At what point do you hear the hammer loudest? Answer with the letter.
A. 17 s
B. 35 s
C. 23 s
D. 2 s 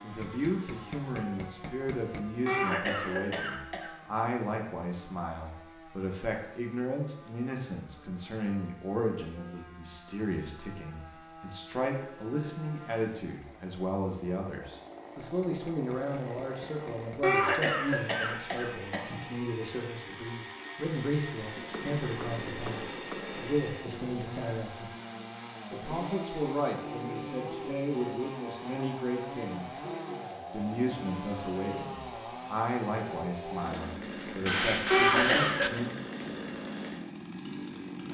B.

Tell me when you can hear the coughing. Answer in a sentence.
You can hear the coughing from 2.5 to 3.9 s, from 17.2 to 19.2 s and from 34.9 to 35.8 s.